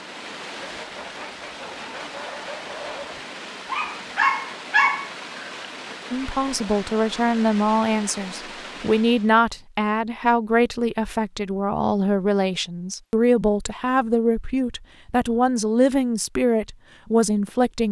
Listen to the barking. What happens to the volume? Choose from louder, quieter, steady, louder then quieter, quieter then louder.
louder.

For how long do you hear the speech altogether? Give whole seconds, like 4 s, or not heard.
12 s.